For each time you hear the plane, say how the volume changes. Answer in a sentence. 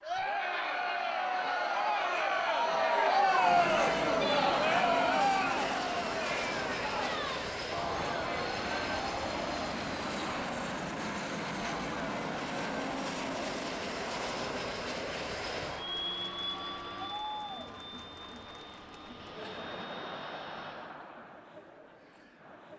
The plane can be heard from 3.3 to 21.0 s, getting quieter.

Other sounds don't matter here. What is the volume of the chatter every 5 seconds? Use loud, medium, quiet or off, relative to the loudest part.
loud, medium, quiet, quiet, quiet.